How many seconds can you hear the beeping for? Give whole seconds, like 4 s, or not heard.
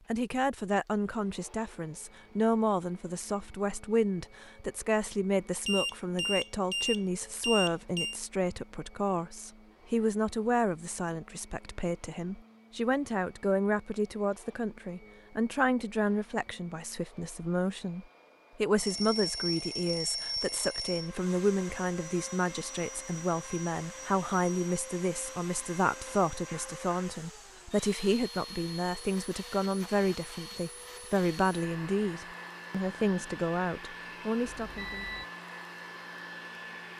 6 s.